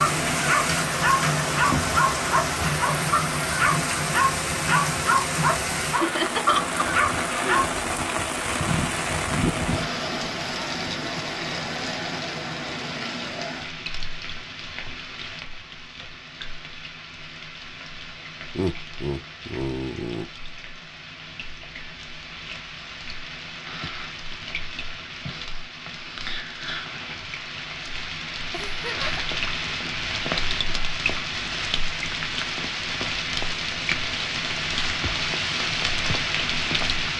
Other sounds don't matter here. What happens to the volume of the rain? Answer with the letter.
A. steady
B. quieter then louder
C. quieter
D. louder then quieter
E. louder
B.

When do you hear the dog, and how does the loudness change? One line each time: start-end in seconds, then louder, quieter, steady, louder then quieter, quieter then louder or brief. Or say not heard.
0.0-7.8 steady.